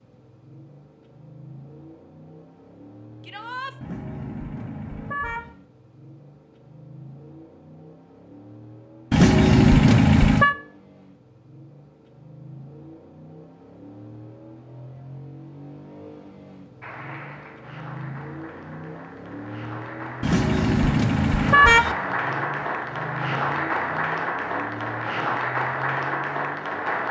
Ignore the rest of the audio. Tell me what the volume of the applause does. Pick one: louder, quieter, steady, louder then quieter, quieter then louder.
louder.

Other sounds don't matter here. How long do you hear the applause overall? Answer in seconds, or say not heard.
10 s.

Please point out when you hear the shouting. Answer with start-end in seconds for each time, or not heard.
3.2-3.8.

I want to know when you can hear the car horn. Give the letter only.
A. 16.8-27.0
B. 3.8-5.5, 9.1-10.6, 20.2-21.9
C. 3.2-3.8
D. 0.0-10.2
B.